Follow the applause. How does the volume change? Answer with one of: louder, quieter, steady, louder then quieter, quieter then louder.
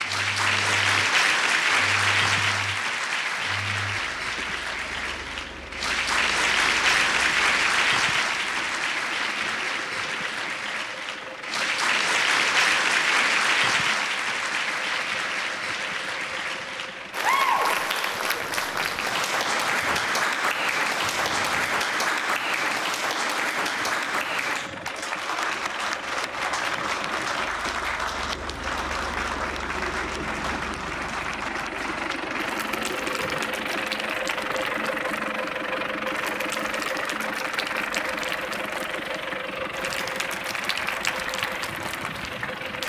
quieter.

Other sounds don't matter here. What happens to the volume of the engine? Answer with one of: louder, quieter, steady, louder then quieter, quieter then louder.
louder.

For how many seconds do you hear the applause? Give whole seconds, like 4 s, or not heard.
43 s.